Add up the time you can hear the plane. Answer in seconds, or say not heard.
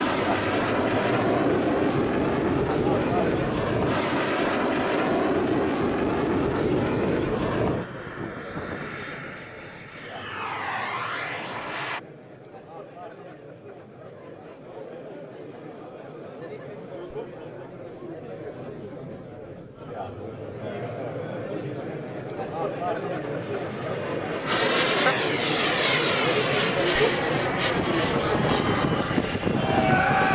19 s.